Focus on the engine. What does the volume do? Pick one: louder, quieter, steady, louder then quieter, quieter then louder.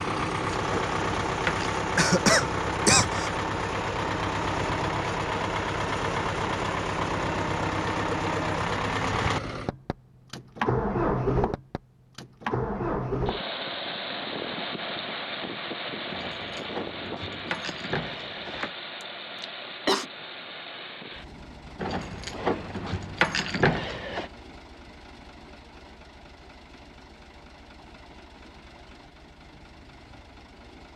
quieter.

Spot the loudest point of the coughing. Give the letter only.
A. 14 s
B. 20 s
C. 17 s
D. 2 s
D.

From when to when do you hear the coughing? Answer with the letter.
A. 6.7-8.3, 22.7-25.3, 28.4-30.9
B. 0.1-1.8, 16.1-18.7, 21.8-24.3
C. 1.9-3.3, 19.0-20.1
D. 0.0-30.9
C.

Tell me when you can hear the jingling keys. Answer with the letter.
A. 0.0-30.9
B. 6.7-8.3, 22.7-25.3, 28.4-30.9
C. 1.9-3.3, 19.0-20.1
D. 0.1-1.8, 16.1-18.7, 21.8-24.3
D.